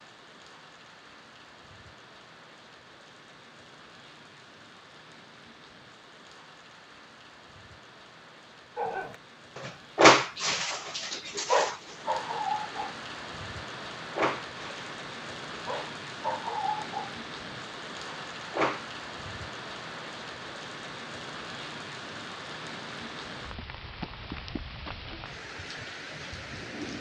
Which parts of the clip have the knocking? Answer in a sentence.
You can't hear the knocking here.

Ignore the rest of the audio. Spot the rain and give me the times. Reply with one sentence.
The rain can be heard from 0.0 to 26.9 s.